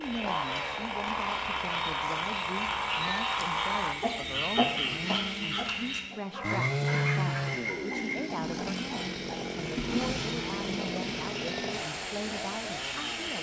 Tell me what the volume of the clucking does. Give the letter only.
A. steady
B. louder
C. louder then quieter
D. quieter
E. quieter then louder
D.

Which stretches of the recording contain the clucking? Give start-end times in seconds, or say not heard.
3.9-9.4.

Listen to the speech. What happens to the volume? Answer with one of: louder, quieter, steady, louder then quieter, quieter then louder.
steady.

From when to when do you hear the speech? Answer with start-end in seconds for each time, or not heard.
0.0-13.3.